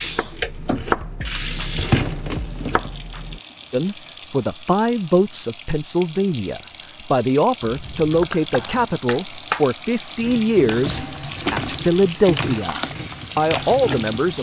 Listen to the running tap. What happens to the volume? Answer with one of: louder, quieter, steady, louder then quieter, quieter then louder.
quieter then louder.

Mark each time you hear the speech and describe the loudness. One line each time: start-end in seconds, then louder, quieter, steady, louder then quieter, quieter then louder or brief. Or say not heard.
3.7-14.3 steady.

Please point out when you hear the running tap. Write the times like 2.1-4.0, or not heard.
0.0-14.3.